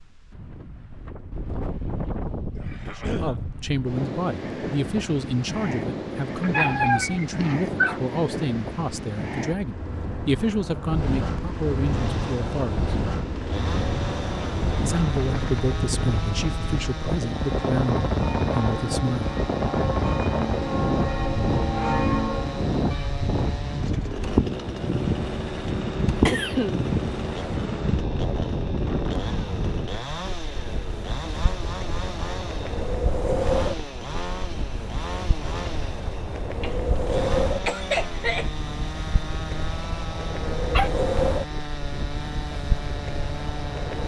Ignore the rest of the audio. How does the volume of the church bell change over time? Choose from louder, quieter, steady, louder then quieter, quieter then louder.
louder.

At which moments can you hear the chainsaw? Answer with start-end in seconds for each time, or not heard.
11.8-44.0.